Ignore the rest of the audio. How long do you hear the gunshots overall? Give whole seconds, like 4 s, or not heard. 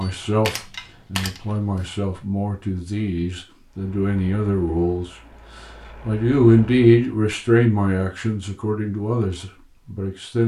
2 s.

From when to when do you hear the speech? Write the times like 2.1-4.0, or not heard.
0.0-5.2, 6.0-10.4.